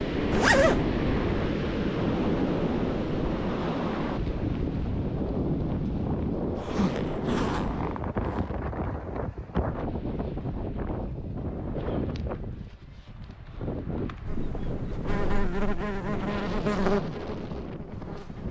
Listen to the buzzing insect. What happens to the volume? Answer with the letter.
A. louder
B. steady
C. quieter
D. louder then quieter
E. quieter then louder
D.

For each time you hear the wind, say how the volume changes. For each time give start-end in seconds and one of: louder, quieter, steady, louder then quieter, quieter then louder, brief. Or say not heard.
0.0-18.4 quieter.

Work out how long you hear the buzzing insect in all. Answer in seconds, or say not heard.
4 s.